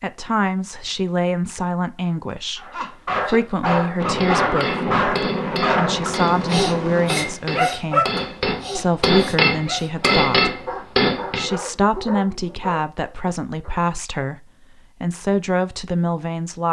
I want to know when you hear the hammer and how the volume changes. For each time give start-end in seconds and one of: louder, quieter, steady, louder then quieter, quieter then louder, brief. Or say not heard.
3.6-11.5 louder.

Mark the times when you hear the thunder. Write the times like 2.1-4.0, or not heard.
4.0-7.3.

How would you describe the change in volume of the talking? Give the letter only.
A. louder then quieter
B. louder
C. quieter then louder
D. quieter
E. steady
E.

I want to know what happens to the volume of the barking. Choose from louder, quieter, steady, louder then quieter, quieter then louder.
quieter.